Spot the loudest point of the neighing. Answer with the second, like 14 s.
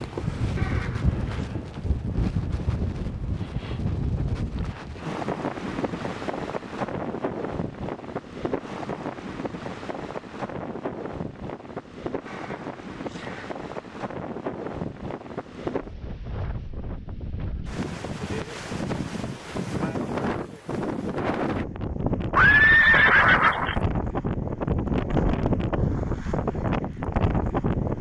23 s.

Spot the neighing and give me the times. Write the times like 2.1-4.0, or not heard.
0.6-1.5, 12.2-13.6, 22.4-23.8.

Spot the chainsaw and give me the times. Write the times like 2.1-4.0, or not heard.
not heard.